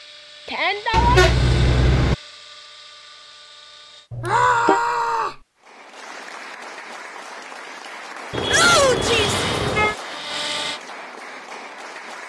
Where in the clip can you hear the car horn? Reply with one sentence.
You can hear the car horn from 0.9 to 2.1 s, from 4.1 to 4.8 s and from 8.3 to 9.9 s.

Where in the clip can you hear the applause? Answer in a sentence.
The applause can be heard from 5.6 to 12.2 s.